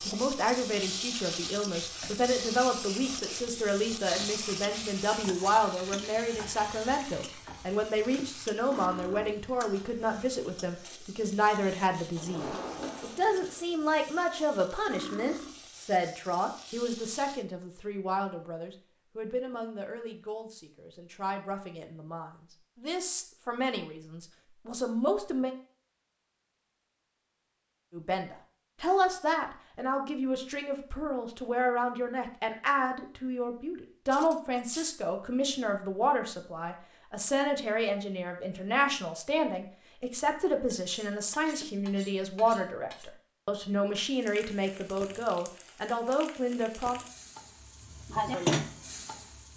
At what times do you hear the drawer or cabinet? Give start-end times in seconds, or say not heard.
12.2-13.6.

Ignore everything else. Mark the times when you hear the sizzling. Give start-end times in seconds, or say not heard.
0.0-17.4, 44.0-49.5.